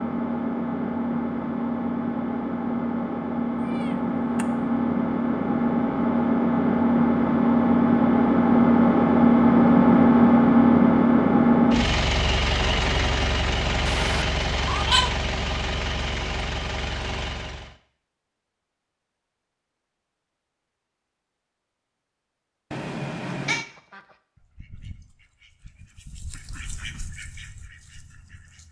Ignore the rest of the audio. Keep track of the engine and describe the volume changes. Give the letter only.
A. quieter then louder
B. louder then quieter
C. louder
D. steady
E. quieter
B.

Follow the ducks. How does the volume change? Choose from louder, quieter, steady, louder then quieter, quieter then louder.
louder then quieter.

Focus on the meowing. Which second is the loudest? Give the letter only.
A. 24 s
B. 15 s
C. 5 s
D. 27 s
B.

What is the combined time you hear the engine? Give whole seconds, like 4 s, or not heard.
18 s.